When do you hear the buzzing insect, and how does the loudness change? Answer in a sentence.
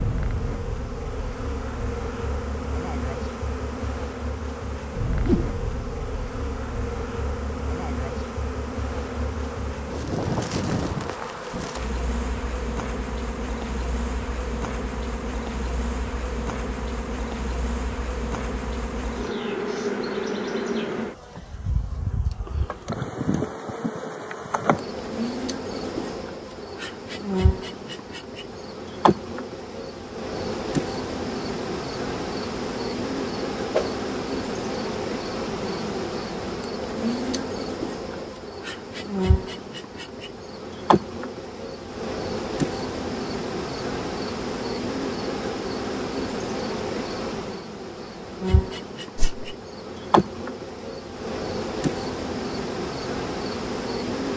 The buzzing insect can be heard from 0.0 to 54.3 s, at a steady volume.